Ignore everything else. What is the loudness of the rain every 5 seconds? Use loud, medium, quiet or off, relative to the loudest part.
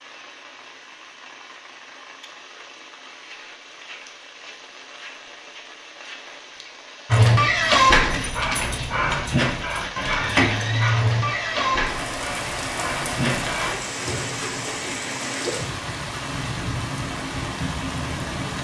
quiet, medium, loud, loud.